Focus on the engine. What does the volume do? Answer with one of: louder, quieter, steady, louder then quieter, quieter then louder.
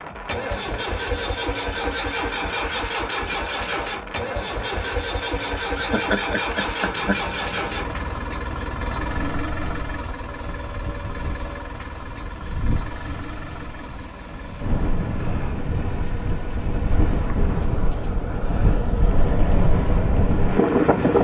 quieter.